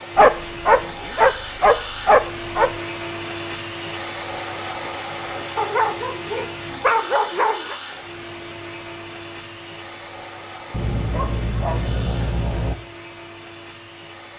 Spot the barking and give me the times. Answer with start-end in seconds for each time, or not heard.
0.1-2.7, 5.5-7.8, 10.7-12.8.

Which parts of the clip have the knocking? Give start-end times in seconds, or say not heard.
not heard.